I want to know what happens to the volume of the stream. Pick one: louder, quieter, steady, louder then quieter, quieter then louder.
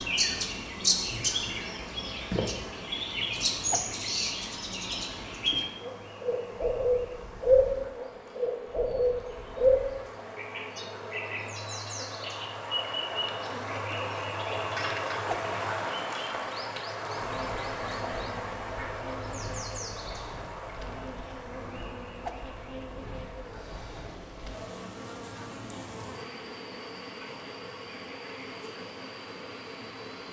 louder then quieter.